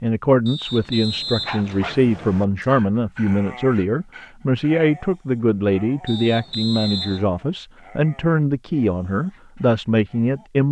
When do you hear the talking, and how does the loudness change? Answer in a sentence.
You can hear the talking from 0.0 to 10.6 s, at a steady volume.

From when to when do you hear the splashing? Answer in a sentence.
You can't hear the splashing here.